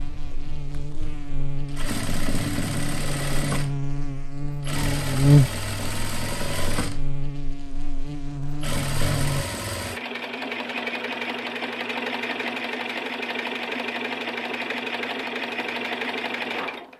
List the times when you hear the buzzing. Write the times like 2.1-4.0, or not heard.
0.0-9.4.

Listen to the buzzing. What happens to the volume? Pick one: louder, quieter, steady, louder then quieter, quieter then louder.
louder then quieter.